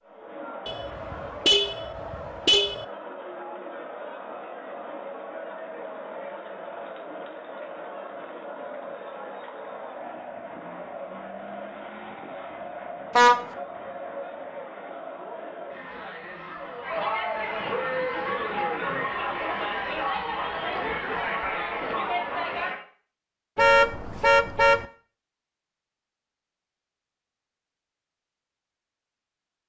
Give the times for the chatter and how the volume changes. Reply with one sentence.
The chatter can be heard from 0.0 to 22.8 s, getting louder.